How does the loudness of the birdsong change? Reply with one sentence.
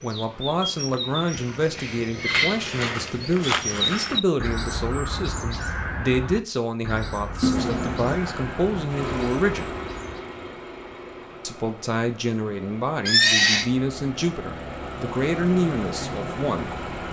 The loudness of the birdsong goes up, then down.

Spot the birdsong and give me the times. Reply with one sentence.
The birdsong can be heard from 0.0 to 10.2 s.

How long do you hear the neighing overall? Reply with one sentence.
The neighing can be heard for 3 seconds in total.